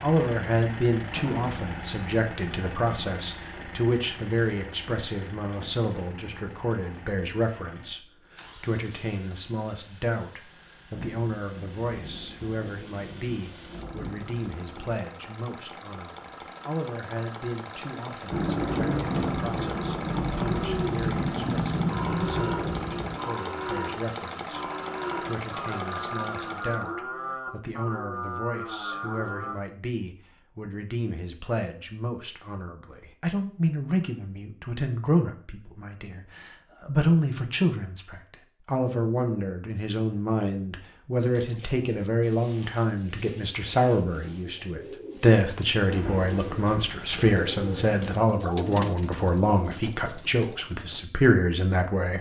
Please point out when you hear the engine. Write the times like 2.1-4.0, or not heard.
0.0-26.9.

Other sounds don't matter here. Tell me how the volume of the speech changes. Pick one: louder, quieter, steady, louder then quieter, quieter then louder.
quieter then louder.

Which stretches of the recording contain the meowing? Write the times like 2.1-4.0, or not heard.
not heard.